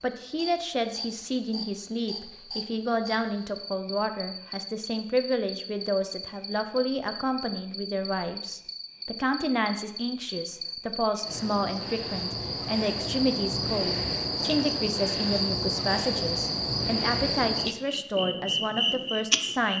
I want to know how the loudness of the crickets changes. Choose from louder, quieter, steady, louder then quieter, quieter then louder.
louder.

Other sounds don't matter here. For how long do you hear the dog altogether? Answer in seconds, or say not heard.
not heard.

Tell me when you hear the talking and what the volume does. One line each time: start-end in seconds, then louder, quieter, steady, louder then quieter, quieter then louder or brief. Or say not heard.
0.0-19.7 steady.